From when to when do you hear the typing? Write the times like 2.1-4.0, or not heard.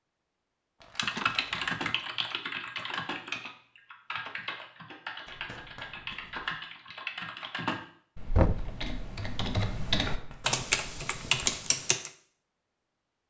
0.9-12.1.